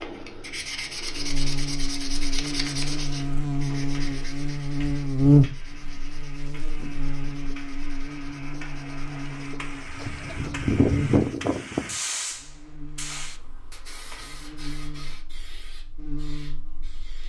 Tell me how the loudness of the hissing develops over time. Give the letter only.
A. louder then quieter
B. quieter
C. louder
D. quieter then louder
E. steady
A.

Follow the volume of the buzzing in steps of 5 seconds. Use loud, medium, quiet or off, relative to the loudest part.
medium, loud, medium, quiet.